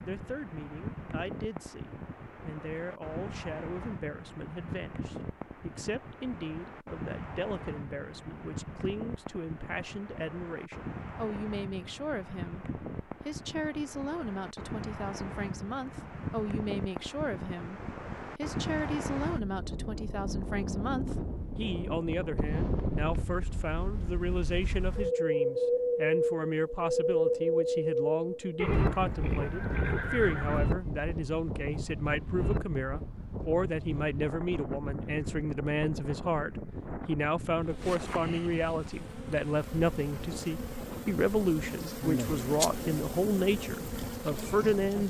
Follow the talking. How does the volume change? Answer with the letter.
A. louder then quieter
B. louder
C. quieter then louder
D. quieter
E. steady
B.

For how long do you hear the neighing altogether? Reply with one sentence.
The neighing can be heard for 2 seconds in total.